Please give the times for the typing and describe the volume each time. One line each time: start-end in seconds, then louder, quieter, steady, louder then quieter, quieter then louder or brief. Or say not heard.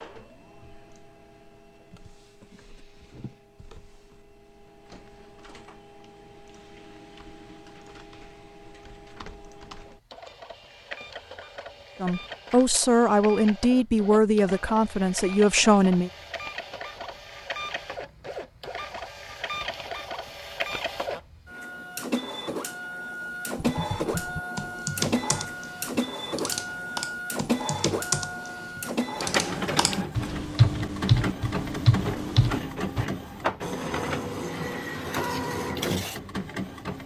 23.6-33.0 louder.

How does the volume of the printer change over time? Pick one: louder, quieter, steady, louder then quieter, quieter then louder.
louder.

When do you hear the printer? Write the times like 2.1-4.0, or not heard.
0.0-37.0.